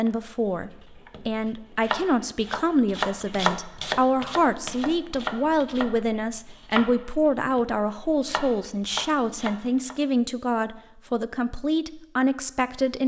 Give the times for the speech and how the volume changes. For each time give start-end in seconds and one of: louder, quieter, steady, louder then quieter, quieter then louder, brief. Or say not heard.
0.0-13.0 steady.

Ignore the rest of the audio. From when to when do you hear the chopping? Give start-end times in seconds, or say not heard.
0.1-9.9.